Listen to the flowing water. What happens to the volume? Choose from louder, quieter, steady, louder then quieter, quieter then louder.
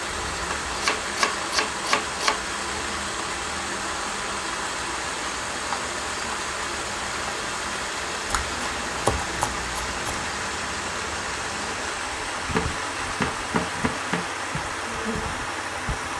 steady.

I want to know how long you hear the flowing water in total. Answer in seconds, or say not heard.
16 s.